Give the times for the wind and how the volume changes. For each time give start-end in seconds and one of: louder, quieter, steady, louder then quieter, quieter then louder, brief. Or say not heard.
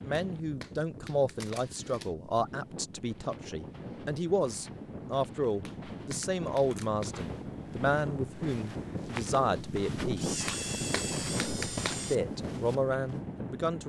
0.0-13.8 louder.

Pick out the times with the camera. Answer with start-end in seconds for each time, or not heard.
1.4-2.1, 6.2-6.9, 10.2-12.2.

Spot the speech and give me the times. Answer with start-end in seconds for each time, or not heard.
0.0-10.3, 12.1-13.8.